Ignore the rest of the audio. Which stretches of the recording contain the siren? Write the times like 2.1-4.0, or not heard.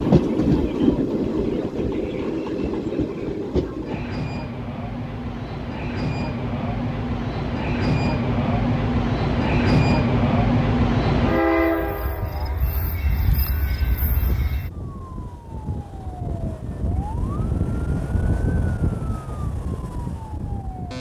11.8-20.9.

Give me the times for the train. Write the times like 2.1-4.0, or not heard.
0.0-14.7.